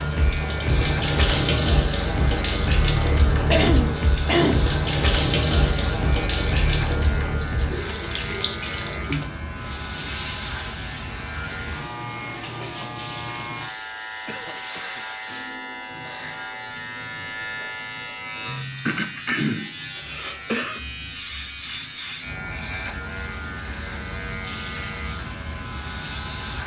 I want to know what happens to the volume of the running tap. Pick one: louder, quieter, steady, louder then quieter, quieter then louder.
quieter.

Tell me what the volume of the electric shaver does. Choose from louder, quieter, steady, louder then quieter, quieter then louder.
steady.